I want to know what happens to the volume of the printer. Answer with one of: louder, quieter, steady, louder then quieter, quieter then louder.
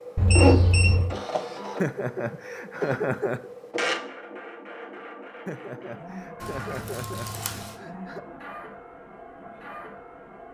quieter.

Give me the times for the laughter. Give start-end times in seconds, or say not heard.
1.8-3.5, 5.5-8.2.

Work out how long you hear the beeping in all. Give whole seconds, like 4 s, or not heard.
2 s.